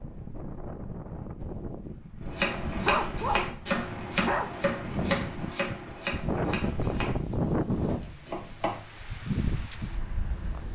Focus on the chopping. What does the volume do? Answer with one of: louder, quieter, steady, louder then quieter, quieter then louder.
quieter.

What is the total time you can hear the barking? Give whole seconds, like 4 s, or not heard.
2 s.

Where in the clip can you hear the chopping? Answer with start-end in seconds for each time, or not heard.
2.2-8.9.